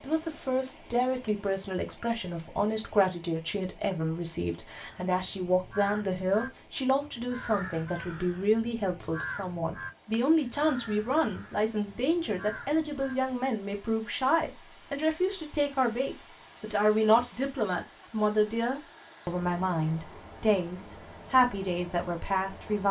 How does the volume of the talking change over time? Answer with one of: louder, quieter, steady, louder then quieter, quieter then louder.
steady.